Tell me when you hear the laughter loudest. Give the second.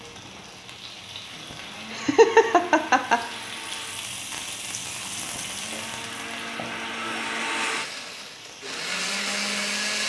2 s.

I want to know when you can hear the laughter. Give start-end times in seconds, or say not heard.
1.9-3.2, 6.5-7.2.